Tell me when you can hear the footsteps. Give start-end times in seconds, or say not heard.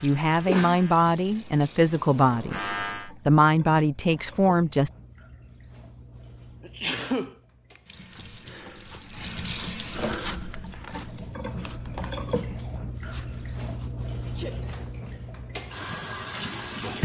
8.0-13.9.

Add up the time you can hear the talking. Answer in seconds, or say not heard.
5 s.